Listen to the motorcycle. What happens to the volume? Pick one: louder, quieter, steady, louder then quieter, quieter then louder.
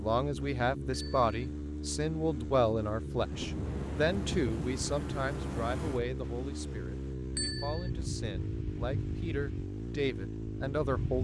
steady.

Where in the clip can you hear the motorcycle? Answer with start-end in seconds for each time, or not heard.
0.0-11.1.